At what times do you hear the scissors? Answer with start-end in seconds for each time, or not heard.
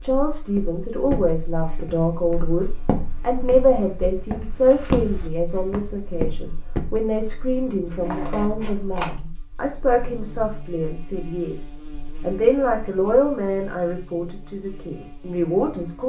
8.0-9.1.